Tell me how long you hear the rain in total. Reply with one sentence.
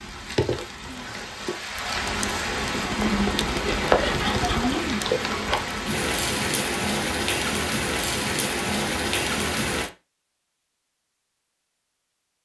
The rain can be heard for 10 seconds in total.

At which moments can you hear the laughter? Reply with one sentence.
You can hear the laughter from 3.6 to 4.8 s.